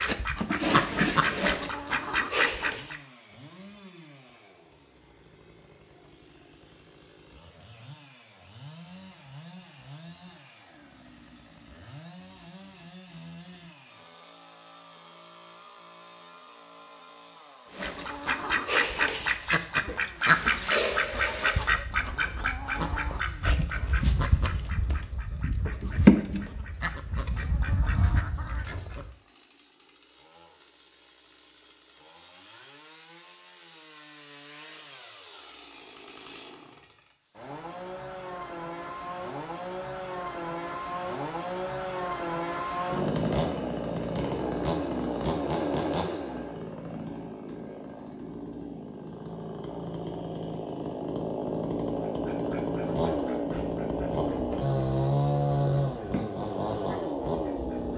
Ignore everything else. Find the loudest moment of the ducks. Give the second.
26 s.